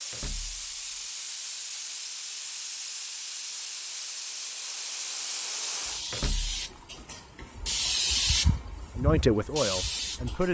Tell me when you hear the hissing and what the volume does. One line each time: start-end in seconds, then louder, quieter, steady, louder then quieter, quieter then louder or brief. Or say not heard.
0.0-10.4 louder.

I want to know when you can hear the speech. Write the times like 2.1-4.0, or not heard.
8.9-10.4.